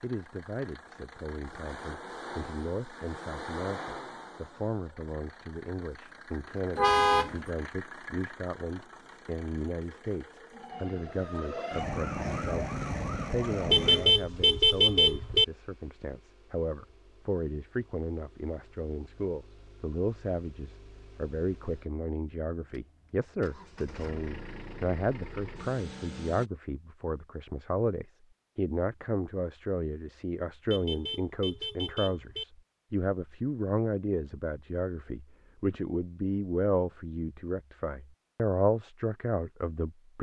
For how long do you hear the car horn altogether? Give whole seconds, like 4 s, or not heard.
4 s.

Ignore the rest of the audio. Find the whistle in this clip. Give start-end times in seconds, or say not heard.
not heard.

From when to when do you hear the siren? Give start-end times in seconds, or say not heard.
10.5-14.2.